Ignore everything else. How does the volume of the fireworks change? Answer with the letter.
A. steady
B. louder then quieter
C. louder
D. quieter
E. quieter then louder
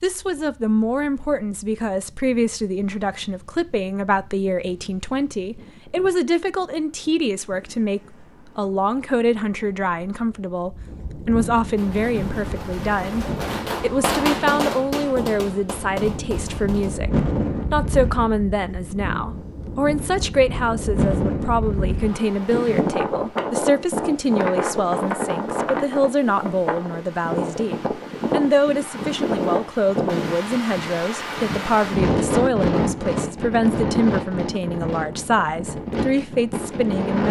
B.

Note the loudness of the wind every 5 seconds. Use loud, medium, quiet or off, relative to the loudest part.
quiet, quiet, medium, medium, loud, loud, loud, loud.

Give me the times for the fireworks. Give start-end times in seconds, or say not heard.
11.8-16.9.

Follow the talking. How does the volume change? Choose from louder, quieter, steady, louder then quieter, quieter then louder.
steady.